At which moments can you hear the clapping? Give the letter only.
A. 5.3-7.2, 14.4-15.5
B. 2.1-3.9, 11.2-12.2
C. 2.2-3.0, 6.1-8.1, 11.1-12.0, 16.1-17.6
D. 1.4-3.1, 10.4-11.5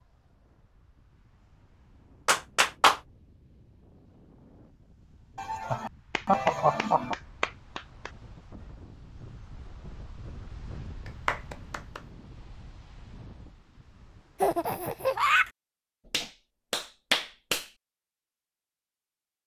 C.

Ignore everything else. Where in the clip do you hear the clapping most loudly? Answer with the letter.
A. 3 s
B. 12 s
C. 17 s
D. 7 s
A.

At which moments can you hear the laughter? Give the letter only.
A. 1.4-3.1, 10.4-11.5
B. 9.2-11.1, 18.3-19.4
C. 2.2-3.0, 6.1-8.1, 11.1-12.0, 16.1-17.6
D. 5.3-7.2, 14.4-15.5
D.